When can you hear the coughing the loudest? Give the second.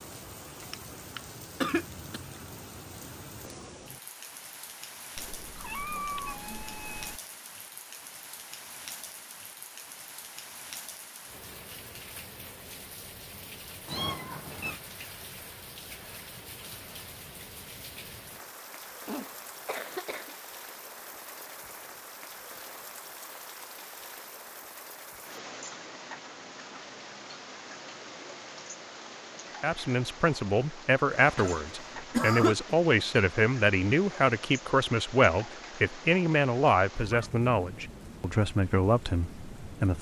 32 s.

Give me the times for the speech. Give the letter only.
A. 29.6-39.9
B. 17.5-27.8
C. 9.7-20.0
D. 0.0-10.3
A.